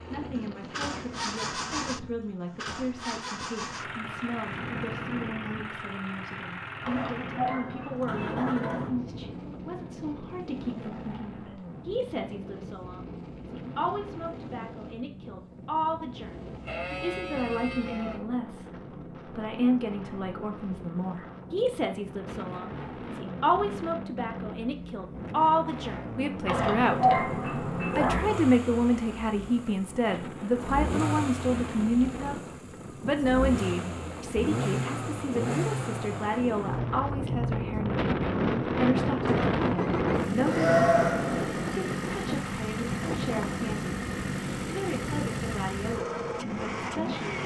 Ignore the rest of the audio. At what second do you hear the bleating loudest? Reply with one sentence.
The loudest moment of the bleating is at 41 seconds.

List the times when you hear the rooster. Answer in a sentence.
The rooster can't be heard in this clip.